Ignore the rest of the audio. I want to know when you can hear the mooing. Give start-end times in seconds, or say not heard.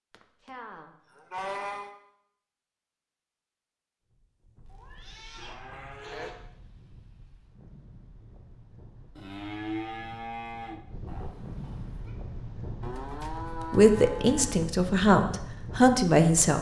0.1-1.9, 5.3-6.3, 9.2-10.8, 12.8-14.7.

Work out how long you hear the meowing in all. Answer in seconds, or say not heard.
3 s.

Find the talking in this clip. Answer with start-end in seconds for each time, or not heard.
13.7-16.5.